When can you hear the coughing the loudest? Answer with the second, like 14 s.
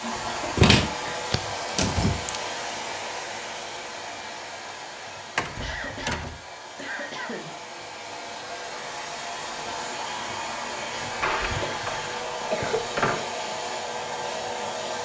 13 s.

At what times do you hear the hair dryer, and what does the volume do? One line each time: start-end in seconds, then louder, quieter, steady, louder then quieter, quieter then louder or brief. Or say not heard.
0.0-14.9 quieter then louder.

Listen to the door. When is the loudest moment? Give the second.
1 s.